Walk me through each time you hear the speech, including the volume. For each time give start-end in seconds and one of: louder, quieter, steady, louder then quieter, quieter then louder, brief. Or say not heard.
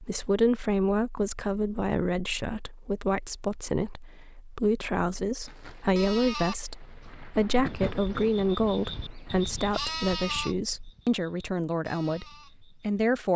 0.0-13.3 steady.